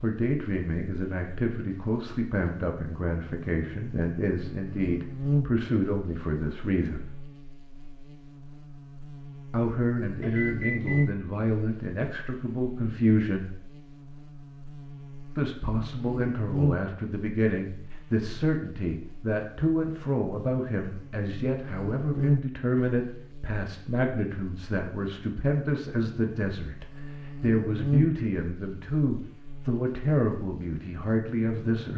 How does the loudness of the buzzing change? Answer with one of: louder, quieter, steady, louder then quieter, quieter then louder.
steady.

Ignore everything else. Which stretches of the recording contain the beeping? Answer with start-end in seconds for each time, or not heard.
10.2-11.1.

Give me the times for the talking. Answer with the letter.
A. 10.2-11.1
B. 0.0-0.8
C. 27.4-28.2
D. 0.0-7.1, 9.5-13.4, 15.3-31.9
D.